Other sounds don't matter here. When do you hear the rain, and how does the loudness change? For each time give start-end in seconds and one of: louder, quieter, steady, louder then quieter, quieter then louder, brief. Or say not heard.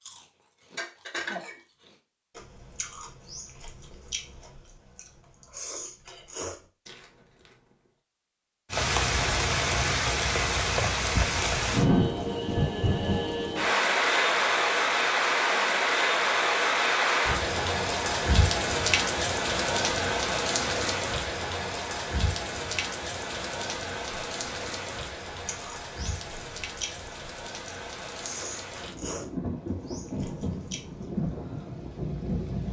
8.7-32.6 quieter.